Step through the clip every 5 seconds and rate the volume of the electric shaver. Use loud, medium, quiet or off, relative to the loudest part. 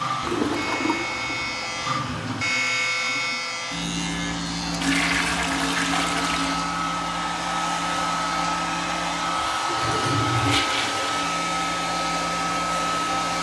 loud, medium, medium.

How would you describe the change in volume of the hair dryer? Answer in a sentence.
The volume of the hair dryer goes up.